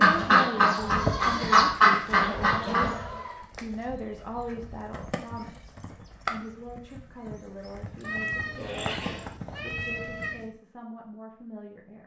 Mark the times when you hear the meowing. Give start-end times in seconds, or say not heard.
8.0-10.6.